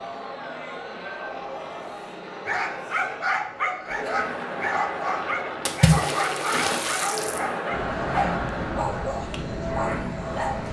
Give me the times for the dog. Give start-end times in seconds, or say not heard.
2.5-10.6.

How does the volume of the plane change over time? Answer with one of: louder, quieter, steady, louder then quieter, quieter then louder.
louder.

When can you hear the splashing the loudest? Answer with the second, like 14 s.
6 s.